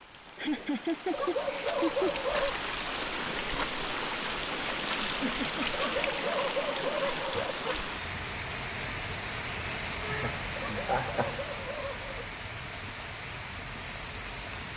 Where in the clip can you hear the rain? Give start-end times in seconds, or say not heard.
0.0-14.7.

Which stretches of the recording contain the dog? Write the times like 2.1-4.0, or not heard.
1.1-2.6, 5.7-7.8, 10.6-12.3.